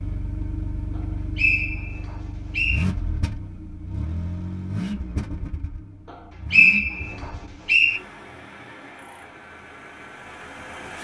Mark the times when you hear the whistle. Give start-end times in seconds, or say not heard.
0.9-2.9, 6.5-8.0.